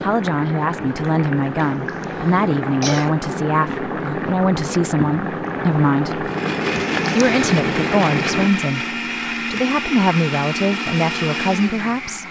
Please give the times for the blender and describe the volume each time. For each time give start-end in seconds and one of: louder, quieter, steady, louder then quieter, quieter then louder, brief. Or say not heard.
6.2-12.2 steady.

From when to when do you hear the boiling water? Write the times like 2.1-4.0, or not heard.
0.0-8.5.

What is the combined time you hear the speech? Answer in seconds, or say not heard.
11 s.